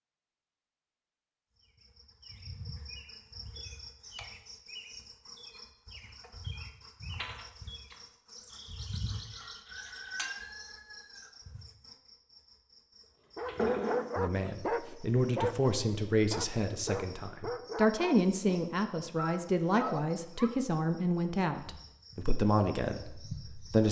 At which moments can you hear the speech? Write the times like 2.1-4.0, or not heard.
14.2-23.8.